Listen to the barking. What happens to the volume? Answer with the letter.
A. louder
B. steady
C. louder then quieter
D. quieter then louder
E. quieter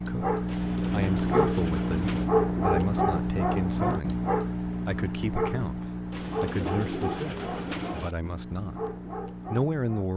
E.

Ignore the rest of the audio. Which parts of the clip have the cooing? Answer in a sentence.
The cooing can be heard from 0.5 to 2.3 s and from 6.1 to 8.2 s.